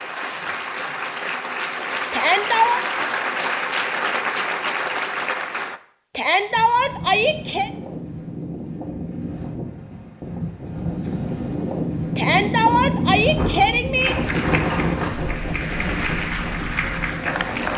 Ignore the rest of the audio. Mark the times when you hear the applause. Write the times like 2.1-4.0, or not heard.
0.0-5.8, 13.9-17.7.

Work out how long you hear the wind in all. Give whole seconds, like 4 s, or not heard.
11 s.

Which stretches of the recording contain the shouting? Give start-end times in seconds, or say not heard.
2.1-2.8, 6.2-7.7, 12.2-14.2.